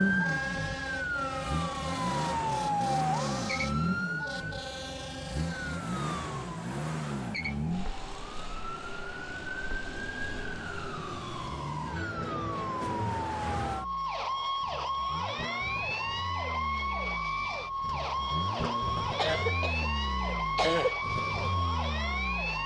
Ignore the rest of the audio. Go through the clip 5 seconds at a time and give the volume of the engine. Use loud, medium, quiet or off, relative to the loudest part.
loud, loud, quiet, medium, medium.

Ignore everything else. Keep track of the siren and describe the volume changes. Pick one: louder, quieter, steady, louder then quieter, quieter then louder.
quieter then louder.